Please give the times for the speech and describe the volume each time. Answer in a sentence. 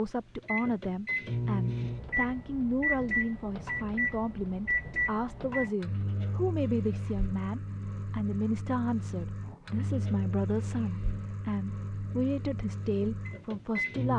The speech can be heard from 0.0 to 14.1 s, at a steady volume.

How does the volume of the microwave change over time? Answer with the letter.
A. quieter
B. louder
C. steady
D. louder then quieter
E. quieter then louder
A.